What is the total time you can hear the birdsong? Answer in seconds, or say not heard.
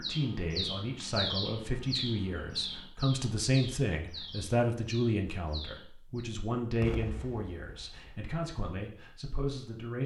6 s.